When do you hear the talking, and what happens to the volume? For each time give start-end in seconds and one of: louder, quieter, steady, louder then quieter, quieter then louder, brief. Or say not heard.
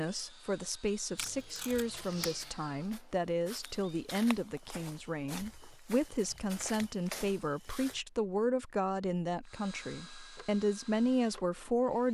0.0-12.0 steady.